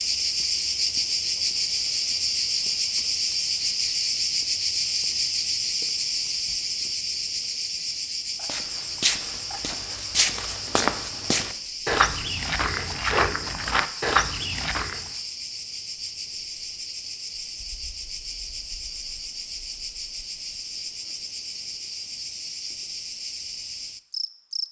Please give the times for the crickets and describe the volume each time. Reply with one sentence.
The crickets can be heard from 0.0 to 24.6 s, getting quieter.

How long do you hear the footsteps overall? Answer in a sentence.
You can hear the footsteps for 7 seconds altogether.